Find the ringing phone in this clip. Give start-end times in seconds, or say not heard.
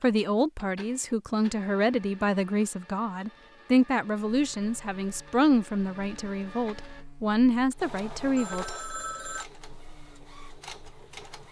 8.3-9.4.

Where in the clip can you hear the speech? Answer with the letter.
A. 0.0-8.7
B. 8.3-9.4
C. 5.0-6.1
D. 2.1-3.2
A.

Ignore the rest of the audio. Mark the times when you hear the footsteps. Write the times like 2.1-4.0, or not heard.
not heard.